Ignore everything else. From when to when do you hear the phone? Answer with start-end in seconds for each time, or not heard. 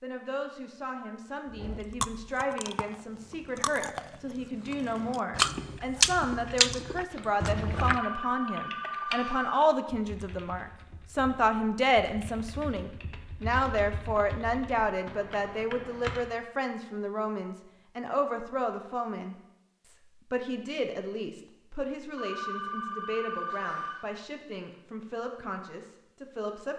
7.9-9.6, 22.1-24.1.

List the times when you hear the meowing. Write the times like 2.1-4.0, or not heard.
not heard.